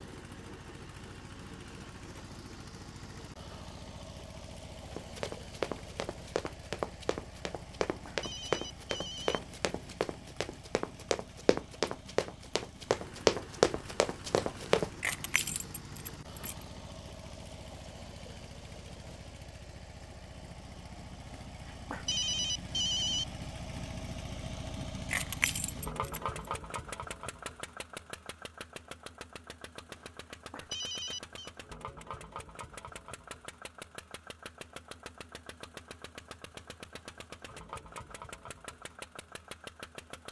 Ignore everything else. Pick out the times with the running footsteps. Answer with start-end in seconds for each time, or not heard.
4.9-14.9.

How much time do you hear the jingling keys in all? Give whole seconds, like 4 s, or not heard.
3 s.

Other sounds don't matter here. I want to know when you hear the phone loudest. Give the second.
23 s.